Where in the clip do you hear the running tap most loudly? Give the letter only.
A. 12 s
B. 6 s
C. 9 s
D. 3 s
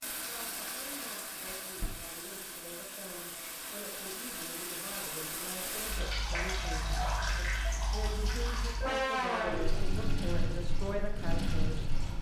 C.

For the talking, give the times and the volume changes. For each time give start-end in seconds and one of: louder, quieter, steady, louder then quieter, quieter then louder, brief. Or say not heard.
0.2-11.9 louder.